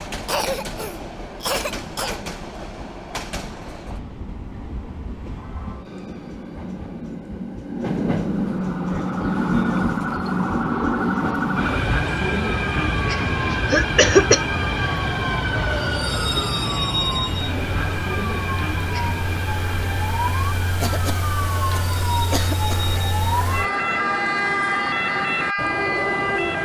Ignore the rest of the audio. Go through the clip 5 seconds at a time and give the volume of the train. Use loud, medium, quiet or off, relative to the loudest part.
medium, loud, loud, loud, medium, loud.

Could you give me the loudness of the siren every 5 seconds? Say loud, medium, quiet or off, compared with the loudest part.
off, medium, medium, medium, loud, loud.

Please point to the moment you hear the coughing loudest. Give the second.
14 s.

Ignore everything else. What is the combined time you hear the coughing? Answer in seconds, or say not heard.
5 s.